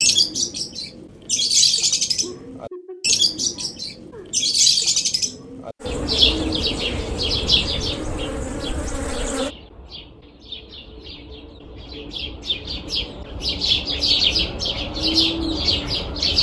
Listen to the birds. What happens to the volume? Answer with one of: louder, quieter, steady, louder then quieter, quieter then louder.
quieter then louder.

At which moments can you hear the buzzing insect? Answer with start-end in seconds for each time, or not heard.
5.8-9.5.